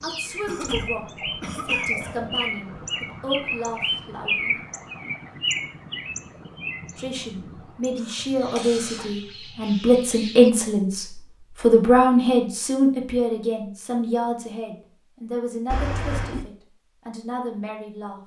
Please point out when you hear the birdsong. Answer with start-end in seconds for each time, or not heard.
0.0-10.5.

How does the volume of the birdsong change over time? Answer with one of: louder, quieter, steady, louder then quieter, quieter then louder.
quieter.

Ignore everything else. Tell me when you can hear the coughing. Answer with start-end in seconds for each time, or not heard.
0.5-2.5, 8.0-9.1, 15.7-16.4.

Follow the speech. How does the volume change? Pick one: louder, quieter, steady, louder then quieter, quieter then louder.
louder then quieter.